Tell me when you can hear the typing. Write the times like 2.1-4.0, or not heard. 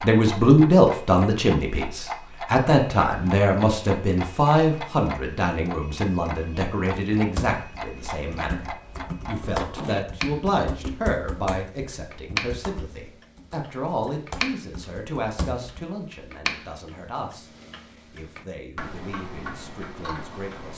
7.2-15.8.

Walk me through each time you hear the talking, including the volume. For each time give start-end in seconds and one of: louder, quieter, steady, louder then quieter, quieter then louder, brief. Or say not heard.
0.0-8.7 quieter
9.2-17.5 quieter
18.1-20.7 brief.